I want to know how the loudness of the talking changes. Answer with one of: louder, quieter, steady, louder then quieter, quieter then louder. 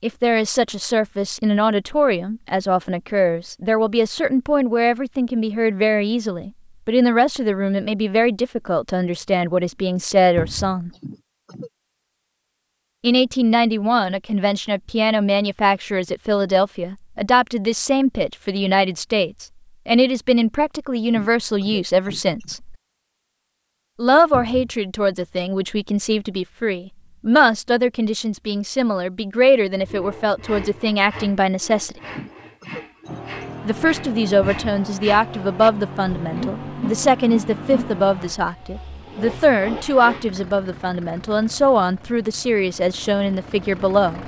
steady.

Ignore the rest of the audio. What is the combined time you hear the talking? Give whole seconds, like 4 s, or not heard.
39 s.